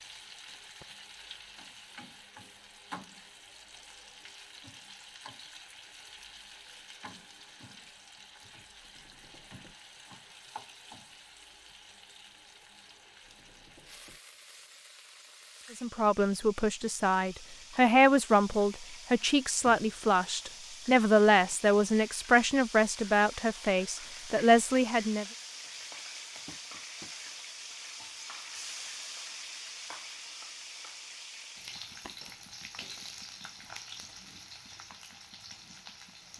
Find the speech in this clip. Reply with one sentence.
You can hear the speech from 15.8 to 25.2 s.